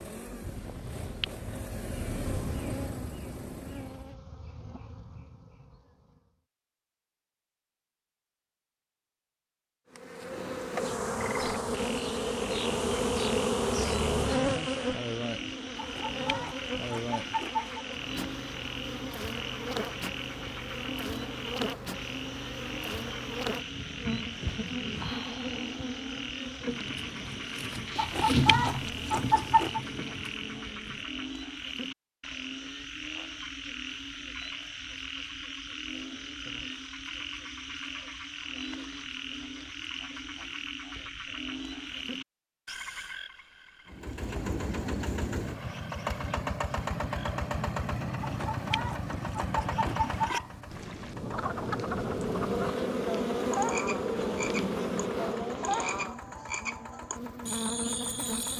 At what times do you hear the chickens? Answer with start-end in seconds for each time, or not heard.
15.8-17.9, 27.9-29.8, 48.2-50.8.